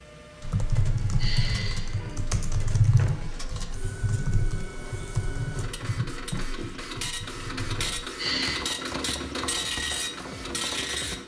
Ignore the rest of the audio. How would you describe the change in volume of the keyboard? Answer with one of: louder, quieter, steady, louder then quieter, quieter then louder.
quieter.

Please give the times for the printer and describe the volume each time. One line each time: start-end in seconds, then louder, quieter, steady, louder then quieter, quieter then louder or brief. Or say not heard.
0.0-11.2 louder.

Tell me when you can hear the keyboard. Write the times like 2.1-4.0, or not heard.
0.4-11.2.